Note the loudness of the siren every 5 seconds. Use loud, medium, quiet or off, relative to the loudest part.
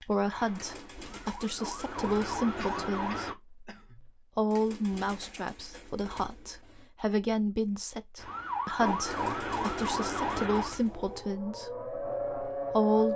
medium, loud, loud.